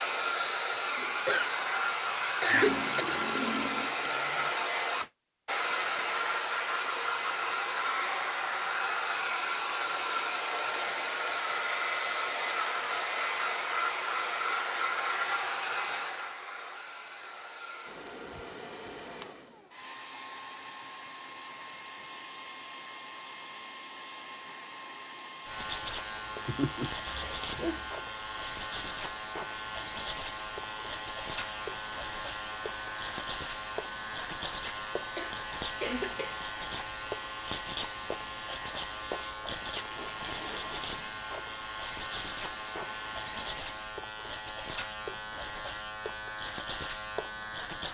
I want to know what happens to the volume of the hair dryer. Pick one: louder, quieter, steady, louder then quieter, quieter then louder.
quieter.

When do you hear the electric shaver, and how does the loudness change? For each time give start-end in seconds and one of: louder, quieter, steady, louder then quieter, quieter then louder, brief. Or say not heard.
25.4-47.8 steady.